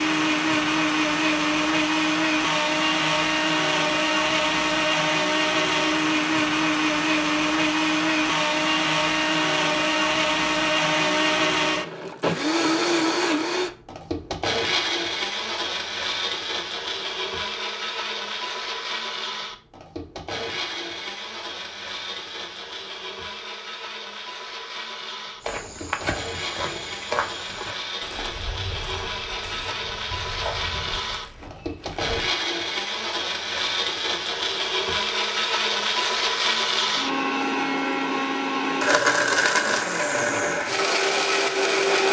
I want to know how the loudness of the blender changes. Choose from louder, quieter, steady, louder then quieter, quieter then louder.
quieter then louder.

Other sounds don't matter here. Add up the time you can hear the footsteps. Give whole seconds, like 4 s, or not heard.
7 s.